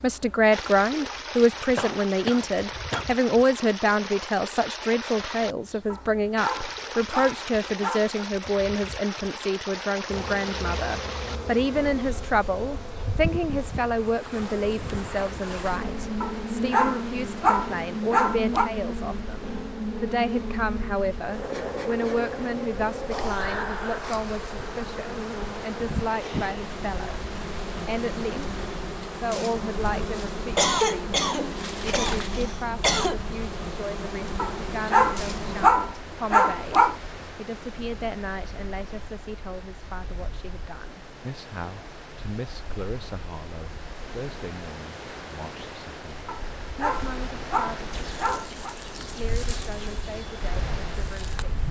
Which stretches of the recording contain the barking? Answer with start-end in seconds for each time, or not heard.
5.9-8.1, 16.2-18.7, 34.4-37.0, 46.2-48.8.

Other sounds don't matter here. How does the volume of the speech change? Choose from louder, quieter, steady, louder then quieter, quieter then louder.
quieter.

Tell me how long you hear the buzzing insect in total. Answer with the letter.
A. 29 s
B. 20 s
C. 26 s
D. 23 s
A.